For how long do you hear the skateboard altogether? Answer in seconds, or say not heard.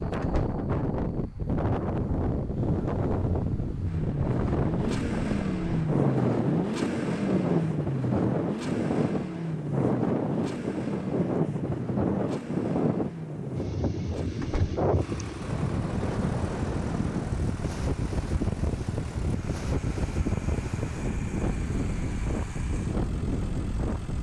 not heard.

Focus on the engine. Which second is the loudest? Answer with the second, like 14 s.
6 s.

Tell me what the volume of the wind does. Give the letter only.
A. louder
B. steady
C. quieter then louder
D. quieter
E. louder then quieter
B.